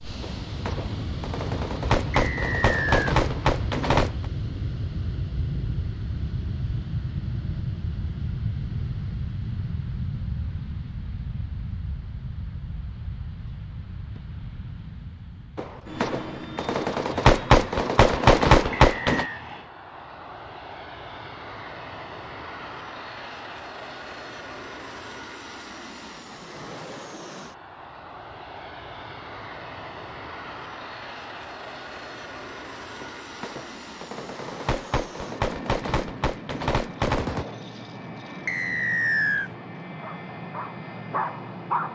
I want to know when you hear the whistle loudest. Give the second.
39 s.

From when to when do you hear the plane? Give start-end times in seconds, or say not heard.
0.0-41.9.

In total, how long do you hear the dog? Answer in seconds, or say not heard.
2 s.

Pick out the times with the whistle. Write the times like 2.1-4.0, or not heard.
2.1-3.1, 18.7-19.4, 38.5-39.5.